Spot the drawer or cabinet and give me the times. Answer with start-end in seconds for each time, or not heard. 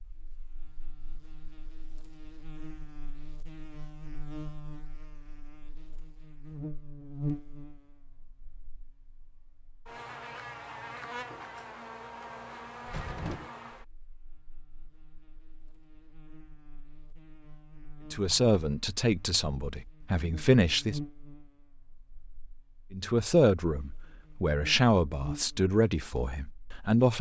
12.8-13.5.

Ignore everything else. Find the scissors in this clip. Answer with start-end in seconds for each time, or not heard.
not heard.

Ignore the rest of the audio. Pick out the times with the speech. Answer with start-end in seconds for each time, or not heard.
18.1-21.0, 22.9-27.1.